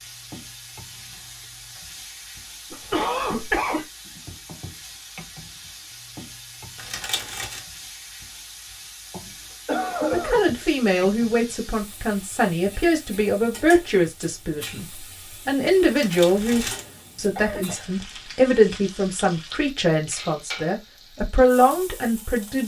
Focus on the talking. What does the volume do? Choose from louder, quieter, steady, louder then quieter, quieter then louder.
steady.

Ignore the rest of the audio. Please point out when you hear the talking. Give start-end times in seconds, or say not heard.
10.1-22.6.